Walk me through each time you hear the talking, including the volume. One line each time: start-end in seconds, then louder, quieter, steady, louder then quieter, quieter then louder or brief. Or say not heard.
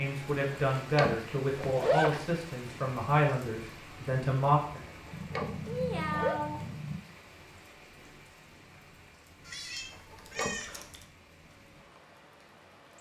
0.0-4.8 steady.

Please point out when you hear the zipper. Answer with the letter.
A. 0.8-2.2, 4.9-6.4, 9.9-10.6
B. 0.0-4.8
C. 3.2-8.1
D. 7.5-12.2
A.